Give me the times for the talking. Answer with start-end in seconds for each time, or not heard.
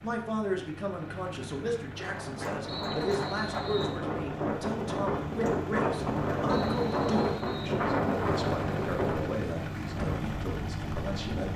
0.0-11.5.